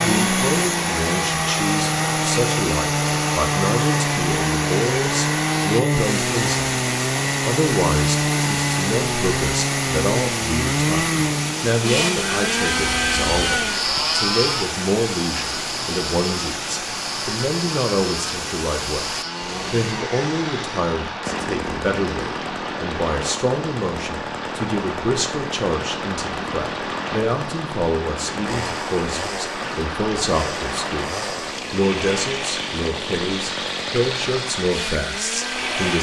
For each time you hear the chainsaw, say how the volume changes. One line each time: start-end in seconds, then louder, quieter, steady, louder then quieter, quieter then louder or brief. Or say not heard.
0.0-35.9 quieter.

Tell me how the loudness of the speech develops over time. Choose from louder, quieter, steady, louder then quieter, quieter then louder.
steady.